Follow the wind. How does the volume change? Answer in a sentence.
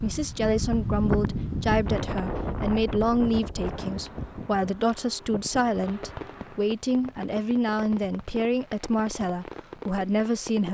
The volume of the wind goes down.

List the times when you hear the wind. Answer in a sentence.
The wind can be heard from 0.0 to 6.7 s.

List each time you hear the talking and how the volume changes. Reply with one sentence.
The talking can be heard from 0.0 to 10.7 s, at a steady volume.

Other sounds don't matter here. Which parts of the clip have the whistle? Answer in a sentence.
The whistle can't be heard in this clip.